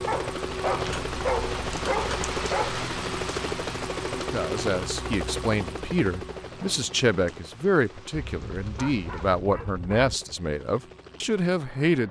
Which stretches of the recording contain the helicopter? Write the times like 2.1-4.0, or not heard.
0.0-12.0.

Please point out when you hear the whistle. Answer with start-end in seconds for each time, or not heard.
not heard.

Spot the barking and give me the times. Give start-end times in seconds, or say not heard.
0.1-2.8, 8.2-10.2.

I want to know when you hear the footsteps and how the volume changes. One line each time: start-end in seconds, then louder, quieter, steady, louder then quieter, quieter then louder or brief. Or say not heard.
not heard.